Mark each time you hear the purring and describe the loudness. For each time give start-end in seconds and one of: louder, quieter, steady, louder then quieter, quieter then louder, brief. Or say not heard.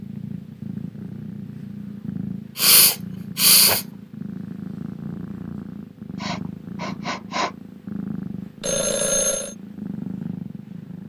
0.0-11.0 steady.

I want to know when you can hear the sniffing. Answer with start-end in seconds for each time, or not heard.
2.5-3.9, 6.2-7.5.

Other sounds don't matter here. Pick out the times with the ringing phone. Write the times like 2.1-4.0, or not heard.
8.6-9.6.